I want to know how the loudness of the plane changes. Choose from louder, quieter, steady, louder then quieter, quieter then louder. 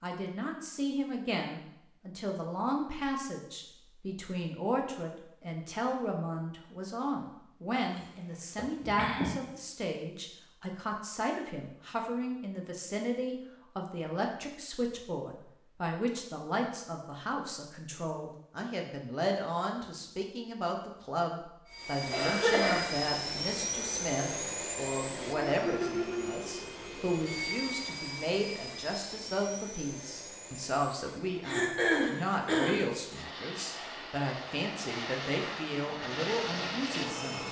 quieter then louder.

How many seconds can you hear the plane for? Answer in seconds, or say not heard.
16 s.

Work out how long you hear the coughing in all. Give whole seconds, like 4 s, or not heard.
4 s.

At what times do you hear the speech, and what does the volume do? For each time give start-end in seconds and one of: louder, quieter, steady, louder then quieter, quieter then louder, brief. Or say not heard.
0.0-37.4 steady.